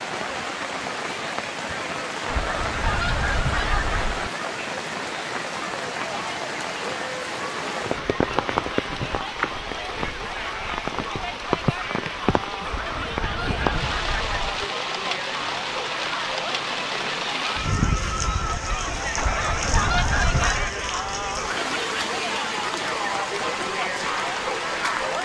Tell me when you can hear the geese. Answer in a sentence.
The geese can be heard from 2.2 to 4.3 s, from 12.7 to 14.7 s and from 19.1 to 20.8 s.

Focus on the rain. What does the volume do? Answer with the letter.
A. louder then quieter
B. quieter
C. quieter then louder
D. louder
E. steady
E.